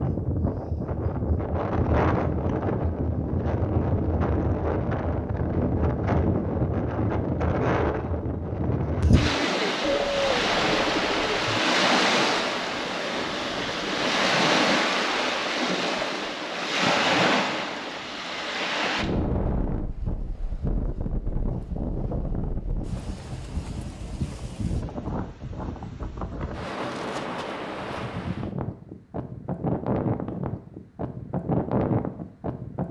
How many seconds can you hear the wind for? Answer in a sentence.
The wind can be heard for 33 seconds in total.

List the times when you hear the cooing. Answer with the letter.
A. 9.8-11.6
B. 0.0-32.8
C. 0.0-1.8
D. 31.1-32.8
A.